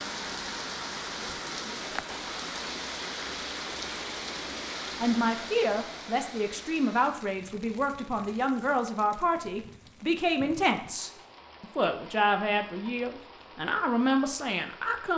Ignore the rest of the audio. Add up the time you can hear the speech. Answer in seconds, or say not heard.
10 s.